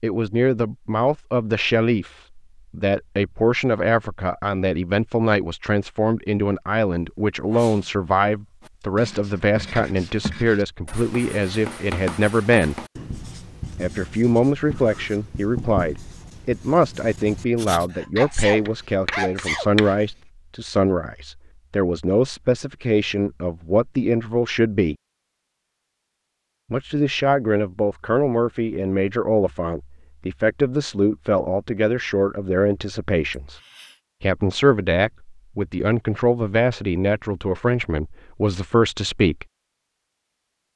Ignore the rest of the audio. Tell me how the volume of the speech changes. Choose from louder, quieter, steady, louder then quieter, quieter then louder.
steady.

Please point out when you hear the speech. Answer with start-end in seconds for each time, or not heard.
0.0-12.8, 13.8-24.9, 26.7-33.6, 34.2-39.5.